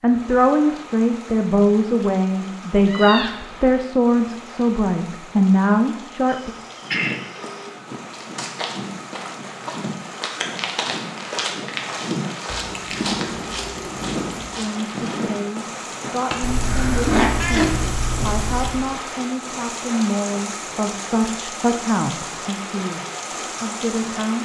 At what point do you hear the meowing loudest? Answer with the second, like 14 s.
17 s.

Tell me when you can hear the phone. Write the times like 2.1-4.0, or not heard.
6.2-7.7.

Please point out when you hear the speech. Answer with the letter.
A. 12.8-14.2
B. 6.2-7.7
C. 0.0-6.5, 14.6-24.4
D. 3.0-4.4
C.